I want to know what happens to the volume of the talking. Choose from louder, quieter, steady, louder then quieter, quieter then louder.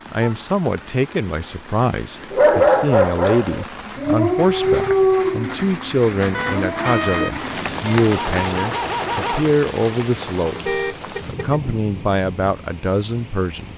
steady.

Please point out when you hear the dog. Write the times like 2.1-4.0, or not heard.
2.3-9.4.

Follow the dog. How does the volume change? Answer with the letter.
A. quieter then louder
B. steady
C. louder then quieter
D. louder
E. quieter
E.